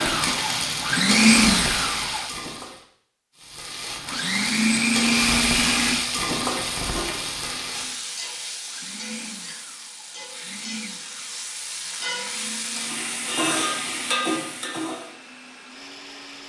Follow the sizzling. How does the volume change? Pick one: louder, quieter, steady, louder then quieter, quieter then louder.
quieter then louder.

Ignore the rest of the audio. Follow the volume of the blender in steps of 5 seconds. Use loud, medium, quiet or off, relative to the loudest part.
loud, medium, quiet, quiet.